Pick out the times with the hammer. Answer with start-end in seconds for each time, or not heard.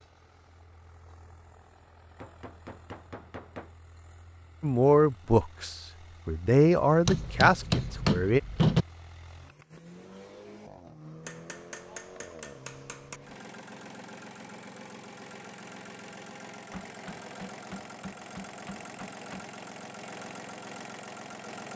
2.2-3.7, 7.0-8.8, 11.2-13.2, 16.7-19.4.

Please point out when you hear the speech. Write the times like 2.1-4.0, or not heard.
4.6-8.4.